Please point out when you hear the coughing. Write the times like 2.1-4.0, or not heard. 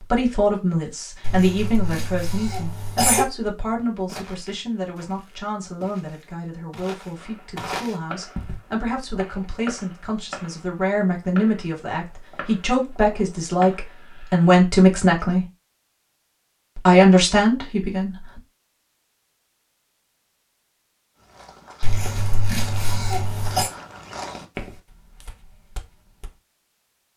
1.2-3.2, 21.8-23.7.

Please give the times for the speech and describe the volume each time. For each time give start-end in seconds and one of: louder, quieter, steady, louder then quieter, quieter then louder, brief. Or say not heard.
0.0-15.4 quieter then louder
16.8-18.4 brief.